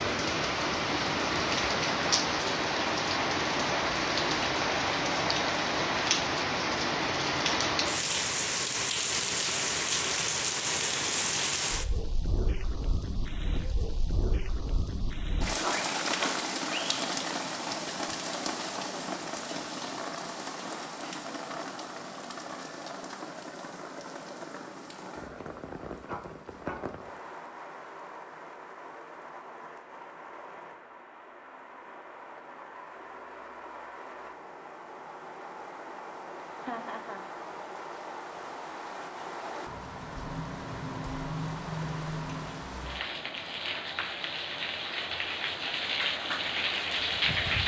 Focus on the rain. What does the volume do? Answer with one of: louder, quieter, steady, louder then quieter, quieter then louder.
quieter then louder.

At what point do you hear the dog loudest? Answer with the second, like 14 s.
16 s.